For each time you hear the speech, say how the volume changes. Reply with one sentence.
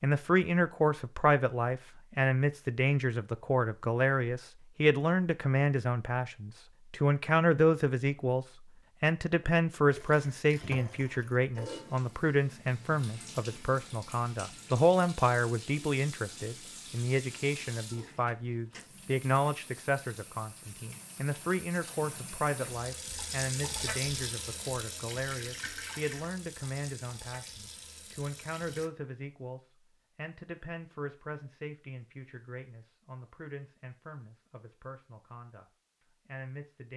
The speech can be heard from 0.0 to 35.6 s, getting quieter; and briefly from 36.2 to 36.9 s.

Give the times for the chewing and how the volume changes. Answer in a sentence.
The chewing can't be heard in this clip.